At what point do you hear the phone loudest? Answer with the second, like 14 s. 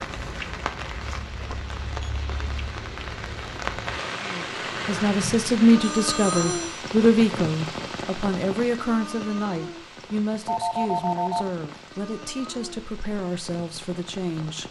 11 s.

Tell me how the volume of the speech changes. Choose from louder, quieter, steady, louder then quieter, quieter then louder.
quieter.